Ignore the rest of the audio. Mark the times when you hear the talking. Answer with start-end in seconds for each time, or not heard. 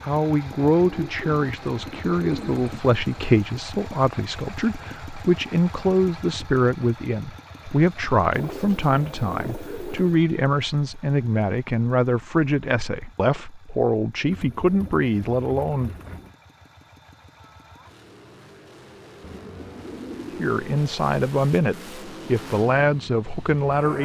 0.0-15.9, 20.4-24.0.